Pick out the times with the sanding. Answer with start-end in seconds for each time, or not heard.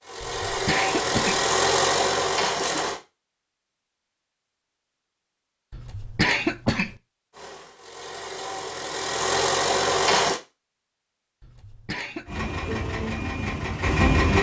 not heard.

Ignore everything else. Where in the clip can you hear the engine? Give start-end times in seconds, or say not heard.
0.0-3.0, 7.3-10.4, 12.2-14.3.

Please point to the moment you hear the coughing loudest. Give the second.
6 s.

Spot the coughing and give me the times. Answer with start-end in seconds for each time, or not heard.
0.2-1.4, 5.7-7.0, 11.4-12.4.